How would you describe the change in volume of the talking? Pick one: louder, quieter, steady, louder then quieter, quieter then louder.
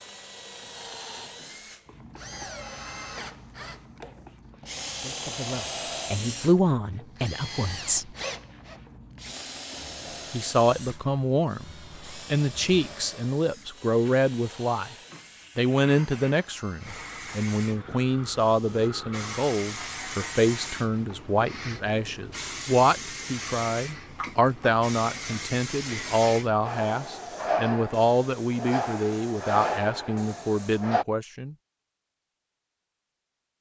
steady.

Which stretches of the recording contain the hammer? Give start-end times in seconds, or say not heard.
not heard.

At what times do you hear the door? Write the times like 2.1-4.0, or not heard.
not heard.